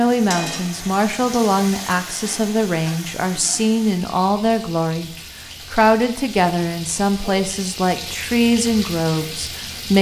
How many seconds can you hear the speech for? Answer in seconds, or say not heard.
9 s.